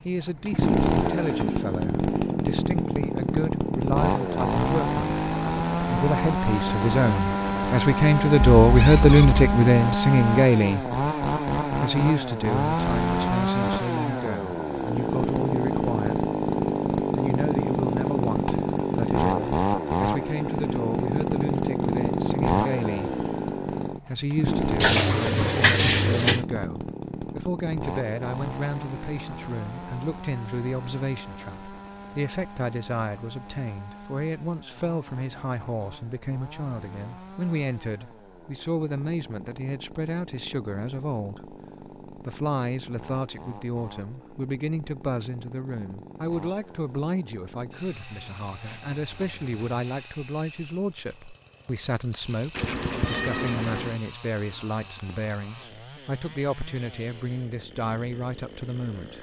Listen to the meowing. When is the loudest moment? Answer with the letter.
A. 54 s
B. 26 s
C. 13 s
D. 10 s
B.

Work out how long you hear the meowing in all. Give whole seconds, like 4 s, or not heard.
4 s.